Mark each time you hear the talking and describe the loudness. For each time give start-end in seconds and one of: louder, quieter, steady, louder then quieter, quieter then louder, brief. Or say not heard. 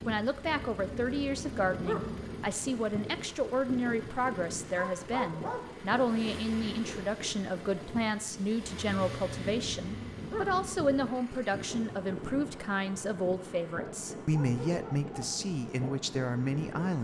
0.1-16.9 steady.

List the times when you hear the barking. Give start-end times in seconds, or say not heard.
0.4-2.5, 4.9-5.7, 8.9-11.1, 14.3-15.3.